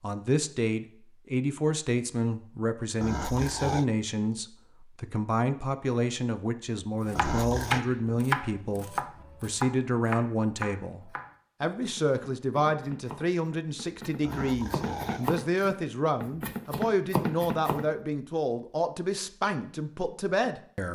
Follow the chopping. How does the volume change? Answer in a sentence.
The volume of the chopping goes down, then up.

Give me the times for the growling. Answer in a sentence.
You can hear the growling from 3.0 to 3.9 s, from 7.2 to 7.8 s and from 14.2 to 15.3 s.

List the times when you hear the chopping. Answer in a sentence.
The chopping can be heard from 7.0 to 17.9 s.